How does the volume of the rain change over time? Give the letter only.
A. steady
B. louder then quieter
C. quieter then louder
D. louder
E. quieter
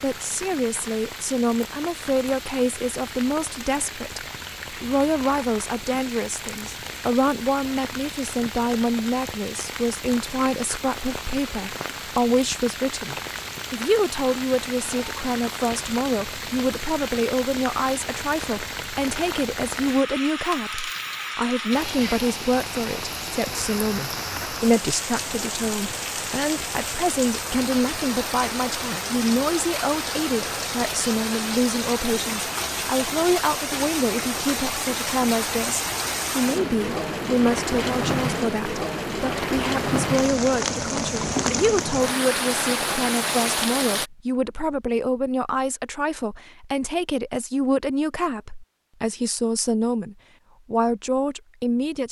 D.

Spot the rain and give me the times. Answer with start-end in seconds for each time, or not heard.
0.0-44.1.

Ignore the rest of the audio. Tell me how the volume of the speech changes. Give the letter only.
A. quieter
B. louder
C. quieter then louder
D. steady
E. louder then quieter
D.